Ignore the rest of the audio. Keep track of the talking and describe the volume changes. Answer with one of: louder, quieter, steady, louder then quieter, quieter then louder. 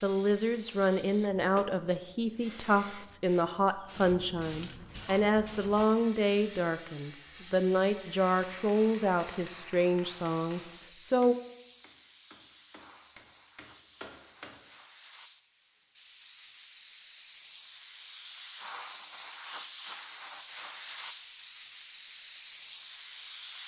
steady.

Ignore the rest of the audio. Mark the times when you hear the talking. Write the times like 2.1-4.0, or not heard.
0.0-11.3.